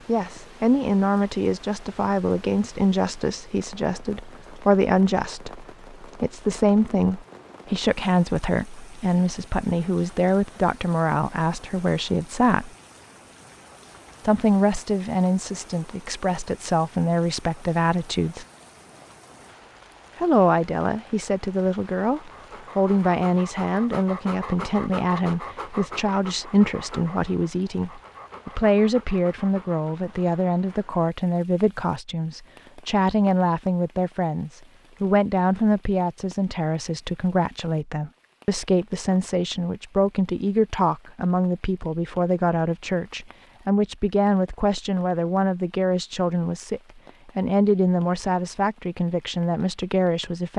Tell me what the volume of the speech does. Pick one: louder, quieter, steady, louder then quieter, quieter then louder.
steady.